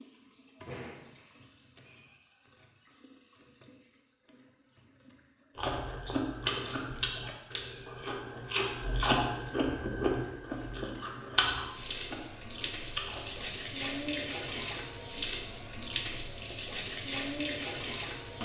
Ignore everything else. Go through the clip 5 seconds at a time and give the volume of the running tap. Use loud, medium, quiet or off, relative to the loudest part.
quiet, quiet, loud, loud.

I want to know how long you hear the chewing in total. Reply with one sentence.
The chewing can be heard for 8 seconds in total.